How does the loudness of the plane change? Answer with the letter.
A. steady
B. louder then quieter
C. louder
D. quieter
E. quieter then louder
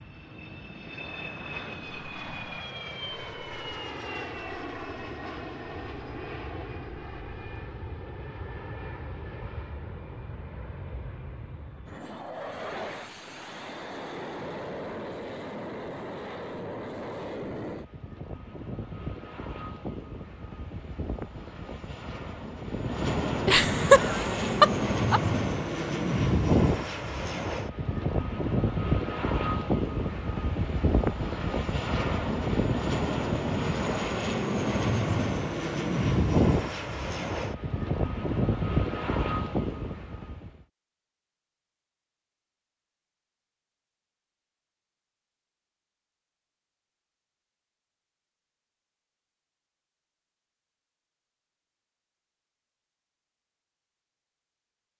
C.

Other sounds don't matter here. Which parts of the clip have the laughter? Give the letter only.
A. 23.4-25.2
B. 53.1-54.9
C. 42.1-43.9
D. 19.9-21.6
A.